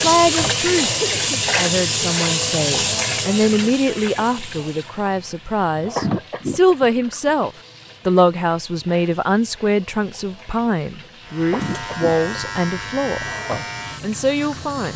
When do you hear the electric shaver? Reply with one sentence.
You can hear the electric shaver from 11.2 to 14.9 s.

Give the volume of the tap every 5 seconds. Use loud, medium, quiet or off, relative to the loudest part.
loud, quiet, quiet.